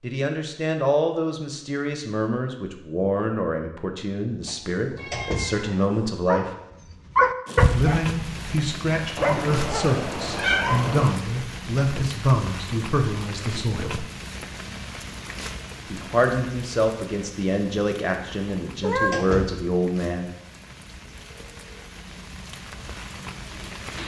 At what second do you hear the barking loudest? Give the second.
7 s.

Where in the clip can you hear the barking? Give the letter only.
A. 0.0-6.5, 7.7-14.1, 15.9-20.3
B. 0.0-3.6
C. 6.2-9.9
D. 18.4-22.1
C.